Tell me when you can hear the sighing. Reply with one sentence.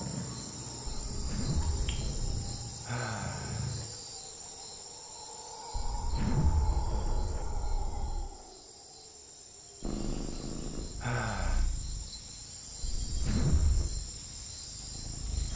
The sighing can be heard from 2.9 to 3.8 s and from 11.0 to 11.7 s.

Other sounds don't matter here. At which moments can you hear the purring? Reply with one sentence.
The purring can be heard from 0.0 to 3.9 s and from 9.8 to 15.5 s.